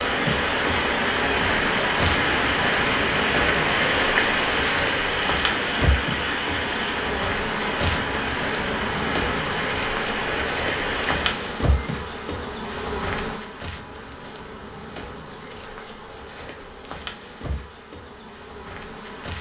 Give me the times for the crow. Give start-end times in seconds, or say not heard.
not heard.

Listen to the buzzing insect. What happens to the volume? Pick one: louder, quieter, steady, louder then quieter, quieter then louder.
quieter.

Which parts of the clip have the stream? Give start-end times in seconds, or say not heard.
0.0-11.6.